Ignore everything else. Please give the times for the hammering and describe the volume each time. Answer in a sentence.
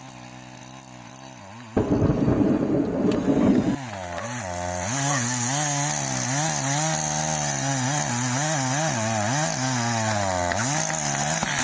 The hammering can't be heard in this clip.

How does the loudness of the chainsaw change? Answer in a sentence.
The volume of the chainsaw goes up.